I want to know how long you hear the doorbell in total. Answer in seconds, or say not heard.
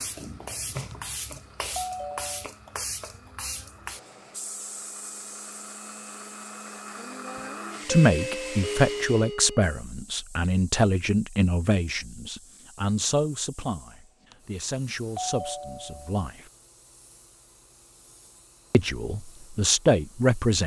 4 s.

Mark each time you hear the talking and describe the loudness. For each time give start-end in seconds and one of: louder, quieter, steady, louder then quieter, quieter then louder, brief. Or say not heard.
7.8-16.4 quieter
18.7-20.6 brief.